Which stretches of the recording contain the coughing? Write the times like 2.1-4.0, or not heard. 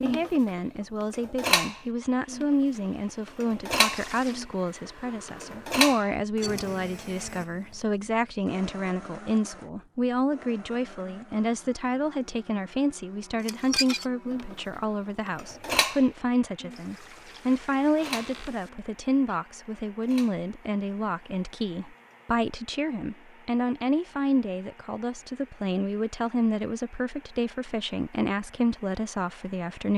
not heard.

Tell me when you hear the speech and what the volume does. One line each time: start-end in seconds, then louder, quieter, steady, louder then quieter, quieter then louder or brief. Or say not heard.
0.0-29.9 steady.